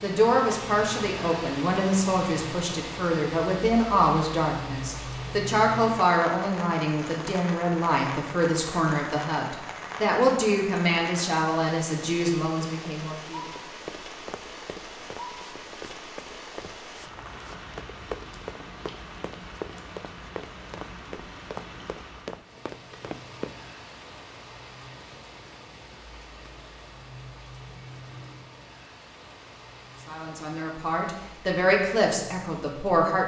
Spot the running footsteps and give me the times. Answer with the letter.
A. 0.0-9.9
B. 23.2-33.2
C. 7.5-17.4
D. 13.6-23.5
D.